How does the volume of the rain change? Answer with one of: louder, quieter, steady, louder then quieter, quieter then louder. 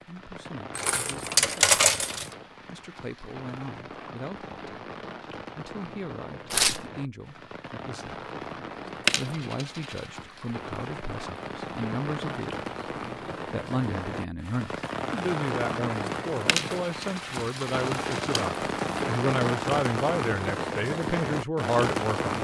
louder.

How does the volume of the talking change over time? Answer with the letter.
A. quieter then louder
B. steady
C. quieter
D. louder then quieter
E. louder
E.